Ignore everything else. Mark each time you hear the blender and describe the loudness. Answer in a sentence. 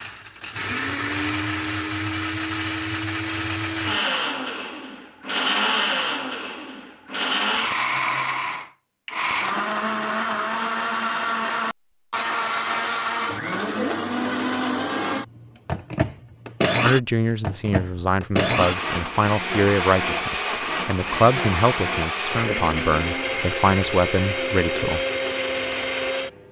You can hear the blender from 0.0 to 26.4 s, at a steady volume.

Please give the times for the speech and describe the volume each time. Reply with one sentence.
You can hear the speech from 16.8 to 25.0 s, at a steady volume.